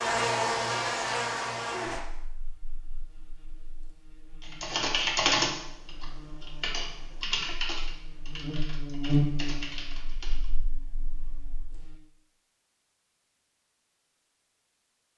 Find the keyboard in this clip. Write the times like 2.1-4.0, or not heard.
4.4-10.5.